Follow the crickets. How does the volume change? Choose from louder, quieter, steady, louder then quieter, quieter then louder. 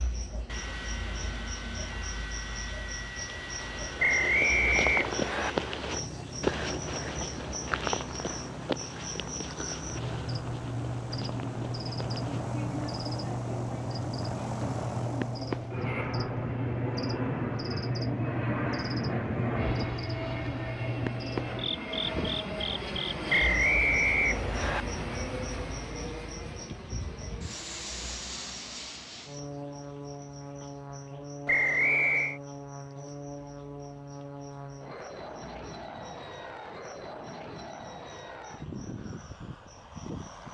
louder then quieter.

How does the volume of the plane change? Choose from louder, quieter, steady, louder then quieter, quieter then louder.
louder then quieter.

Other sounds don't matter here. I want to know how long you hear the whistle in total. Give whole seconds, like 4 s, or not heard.
4 s.